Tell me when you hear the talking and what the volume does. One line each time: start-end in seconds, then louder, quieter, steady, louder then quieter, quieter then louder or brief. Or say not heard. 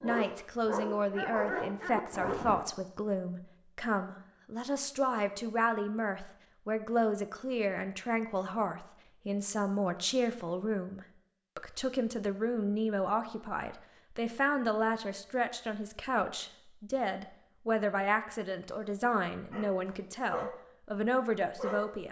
0.0-22.0 steady.